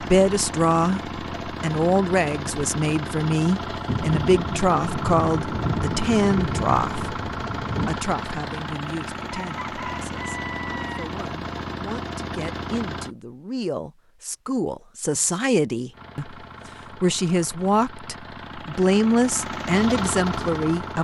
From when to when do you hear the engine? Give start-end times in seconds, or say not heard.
0.0-13.2, 15.9-20.9.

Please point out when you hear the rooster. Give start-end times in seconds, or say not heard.
9.3-11.2.